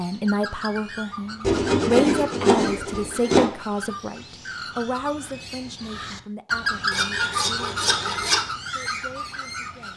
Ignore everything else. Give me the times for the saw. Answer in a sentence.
The saw can be heard from 1.4 to 3.5 s and from 6.9 to 8.4 s.